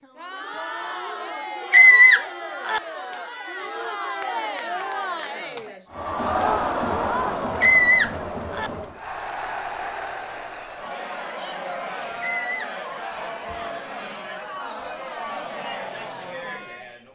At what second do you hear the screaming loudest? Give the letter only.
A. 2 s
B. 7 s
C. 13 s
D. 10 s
A.